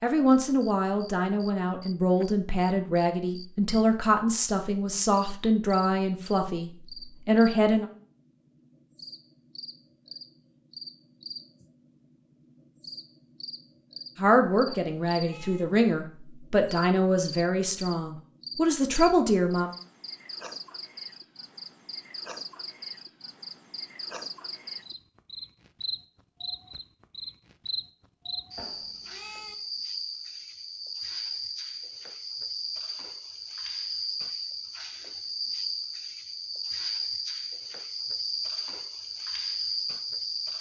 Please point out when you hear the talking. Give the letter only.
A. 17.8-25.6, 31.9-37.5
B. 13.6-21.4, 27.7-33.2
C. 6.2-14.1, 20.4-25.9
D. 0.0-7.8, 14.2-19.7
D.